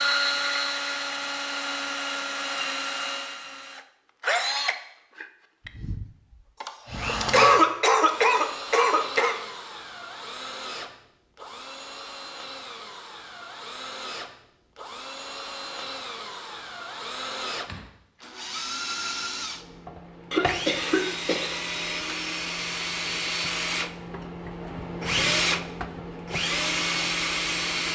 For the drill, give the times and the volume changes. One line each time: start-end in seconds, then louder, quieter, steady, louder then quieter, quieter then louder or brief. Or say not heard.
0.0-27.9 quieter then louder.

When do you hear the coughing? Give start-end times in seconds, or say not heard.
6.6-9.3, 20.3-21.6.